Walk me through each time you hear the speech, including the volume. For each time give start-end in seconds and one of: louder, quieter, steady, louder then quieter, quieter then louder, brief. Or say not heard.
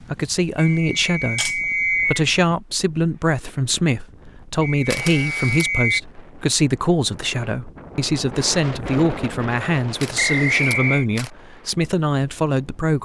0.0-13.0 steady.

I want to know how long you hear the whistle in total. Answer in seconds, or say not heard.
4 s.